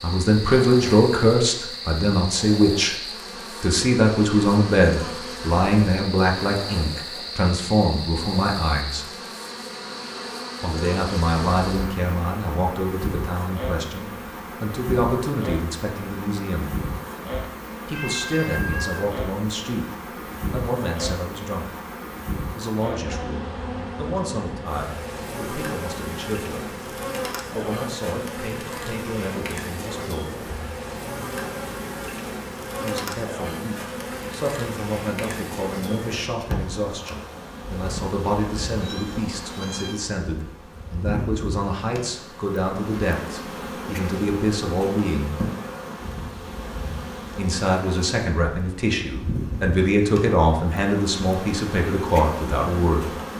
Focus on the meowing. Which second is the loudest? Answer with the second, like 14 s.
19 s.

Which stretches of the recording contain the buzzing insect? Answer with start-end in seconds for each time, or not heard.
0.0-53.3.